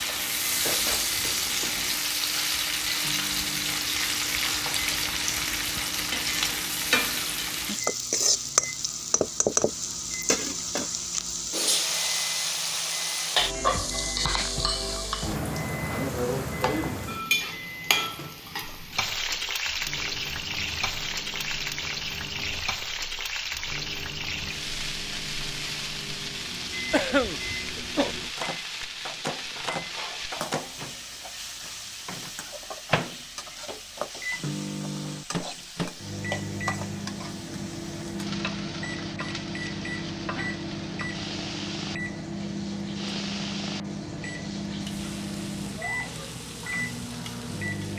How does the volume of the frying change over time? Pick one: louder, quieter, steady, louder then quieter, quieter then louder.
quieter.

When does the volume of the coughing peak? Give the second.
27 s.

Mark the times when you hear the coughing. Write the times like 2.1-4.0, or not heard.
0.6-1.5, 26.9-28.1.